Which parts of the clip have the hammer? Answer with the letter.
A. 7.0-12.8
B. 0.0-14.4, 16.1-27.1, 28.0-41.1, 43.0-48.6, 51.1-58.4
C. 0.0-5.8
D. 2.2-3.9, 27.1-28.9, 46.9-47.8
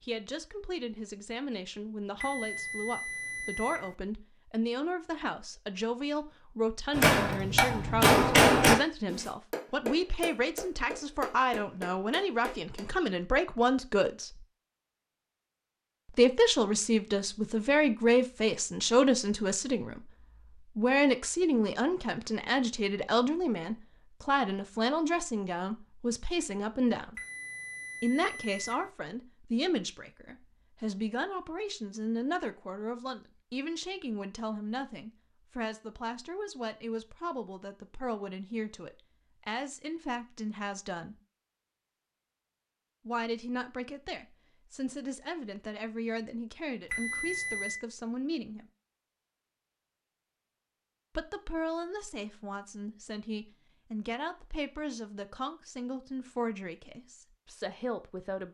A.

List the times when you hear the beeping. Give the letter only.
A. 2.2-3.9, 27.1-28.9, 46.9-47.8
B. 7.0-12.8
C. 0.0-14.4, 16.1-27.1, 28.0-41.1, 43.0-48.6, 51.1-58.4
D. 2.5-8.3
A.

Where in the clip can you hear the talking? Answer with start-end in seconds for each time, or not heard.
0.0-14.4, 16.1-27.1, 28.0-41.1, 43.0-48.6, 51.1-58.4.